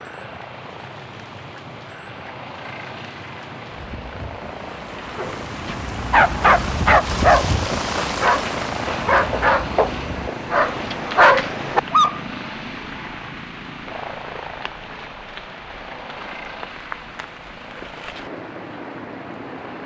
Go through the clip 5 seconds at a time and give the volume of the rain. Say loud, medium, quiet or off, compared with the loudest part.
medium, loud, medium, medium.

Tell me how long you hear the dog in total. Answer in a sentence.
You can hear the dog for 7 seconds altogether.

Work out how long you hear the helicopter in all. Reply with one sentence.
You can hear the helicopter for 20 seconds altogether.